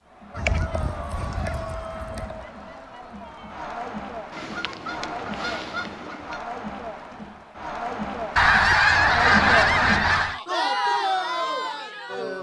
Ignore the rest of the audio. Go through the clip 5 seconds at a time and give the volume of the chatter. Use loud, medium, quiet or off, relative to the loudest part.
medium, loud, loud.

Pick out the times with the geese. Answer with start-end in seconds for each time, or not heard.
0.3-2.5, 4.3-6.4, 8.3-10.4.